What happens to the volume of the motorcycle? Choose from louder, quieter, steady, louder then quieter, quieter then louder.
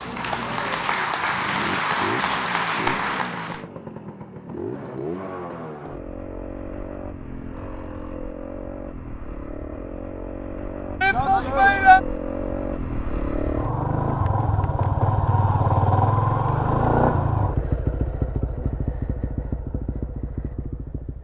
louder.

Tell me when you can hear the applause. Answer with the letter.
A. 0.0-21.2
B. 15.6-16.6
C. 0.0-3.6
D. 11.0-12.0
C.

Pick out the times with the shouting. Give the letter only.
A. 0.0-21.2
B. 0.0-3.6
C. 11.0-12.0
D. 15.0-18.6
C.